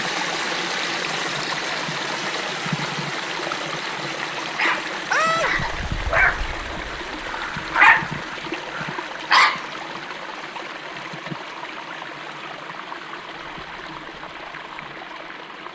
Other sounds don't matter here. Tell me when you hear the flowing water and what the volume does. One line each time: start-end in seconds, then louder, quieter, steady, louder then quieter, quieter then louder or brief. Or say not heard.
0.0-15.7 quieter.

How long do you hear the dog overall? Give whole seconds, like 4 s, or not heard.
5 s.